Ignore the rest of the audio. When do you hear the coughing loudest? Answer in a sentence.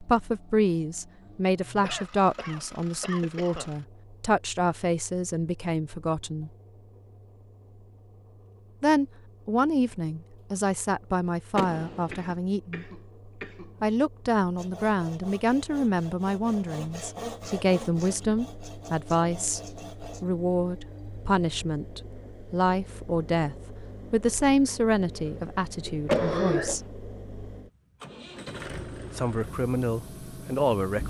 The loudest moment of the coughing is at 26 seconds.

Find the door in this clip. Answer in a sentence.
The door can be heard from 11.6 to 12.3 s and from 26.1 to 26.9 s.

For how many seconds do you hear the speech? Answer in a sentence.
The speech can be heard for 25 seconds in total.